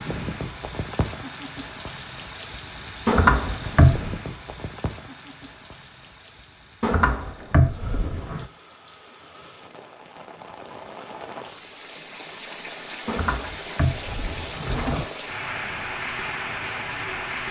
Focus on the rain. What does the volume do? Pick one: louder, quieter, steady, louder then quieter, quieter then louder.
quieter then louder.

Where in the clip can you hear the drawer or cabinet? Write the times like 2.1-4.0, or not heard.
3.0-4.2, 6.8-8.4, 13.1-15.1.